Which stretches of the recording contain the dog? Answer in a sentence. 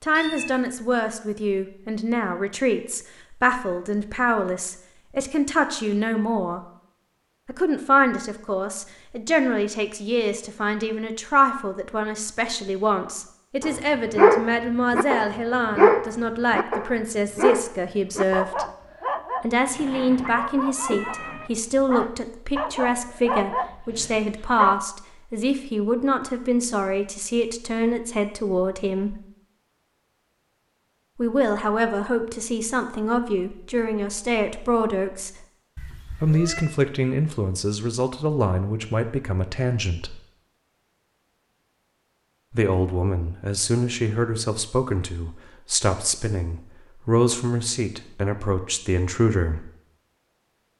The dog can be heard from 13.6 to 24.8 s.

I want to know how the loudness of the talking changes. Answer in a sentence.
The loudness of the talking stays about the same.